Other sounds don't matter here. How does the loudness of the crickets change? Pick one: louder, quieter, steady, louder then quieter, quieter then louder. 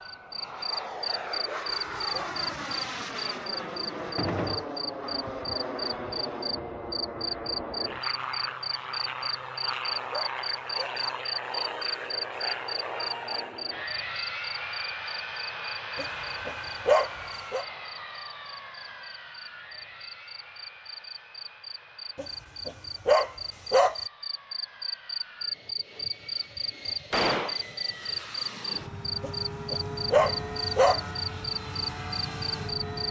quieter then louder.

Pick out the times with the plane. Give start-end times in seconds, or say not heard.
0.0-33.0.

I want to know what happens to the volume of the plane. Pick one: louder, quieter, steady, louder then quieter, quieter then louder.
quieter then louder.